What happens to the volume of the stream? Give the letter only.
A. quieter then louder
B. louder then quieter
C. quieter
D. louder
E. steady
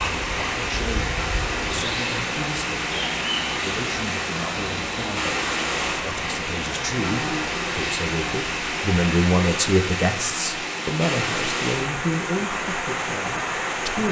E.